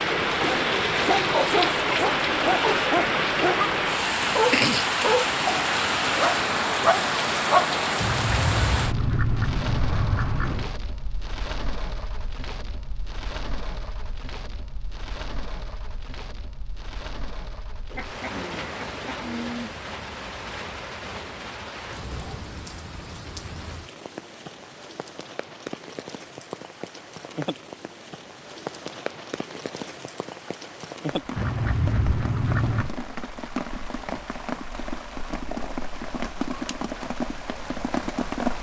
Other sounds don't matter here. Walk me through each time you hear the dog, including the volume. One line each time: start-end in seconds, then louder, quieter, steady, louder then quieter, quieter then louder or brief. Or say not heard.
0.4-7.8 steady.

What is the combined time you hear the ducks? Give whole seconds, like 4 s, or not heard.
6 s.